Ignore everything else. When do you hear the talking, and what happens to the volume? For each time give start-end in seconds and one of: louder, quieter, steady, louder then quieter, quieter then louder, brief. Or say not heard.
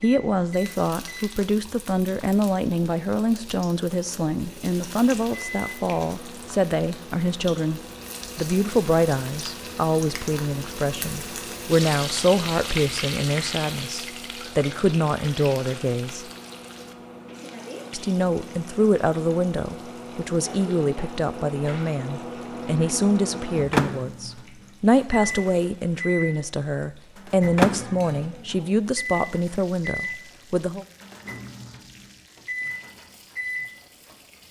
0.0-16.2 steady
17.9-30.9 steady.